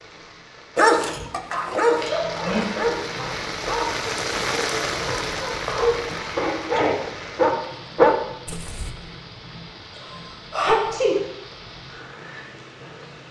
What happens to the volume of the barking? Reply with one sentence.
The loudness of the barking goes down, then up.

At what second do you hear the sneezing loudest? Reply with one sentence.
The loudest moment of the sneezing is at 11 seconds.